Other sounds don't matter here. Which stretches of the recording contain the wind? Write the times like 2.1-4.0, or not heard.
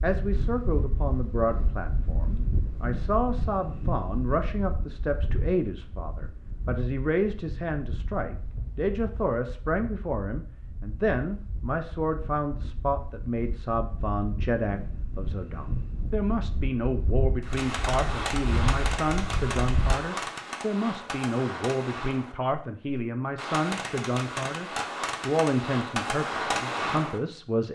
0.0-20.0.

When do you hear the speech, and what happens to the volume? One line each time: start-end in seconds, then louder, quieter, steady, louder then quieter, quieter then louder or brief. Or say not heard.
0.0-27.7 steady.